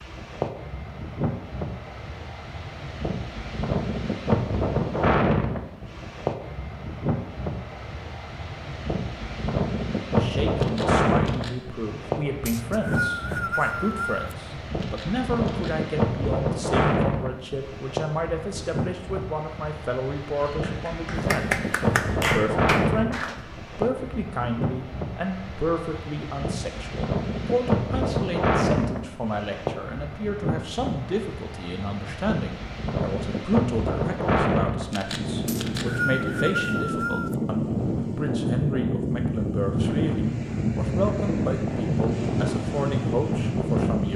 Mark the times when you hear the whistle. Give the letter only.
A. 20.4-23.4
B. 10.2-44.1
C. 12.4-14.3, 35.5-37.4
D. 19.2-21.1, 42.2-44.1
C.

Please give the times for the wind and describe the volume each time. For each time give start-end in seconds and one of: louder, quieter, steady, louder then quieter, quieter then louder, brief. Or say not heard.
0.0-44.1 steady.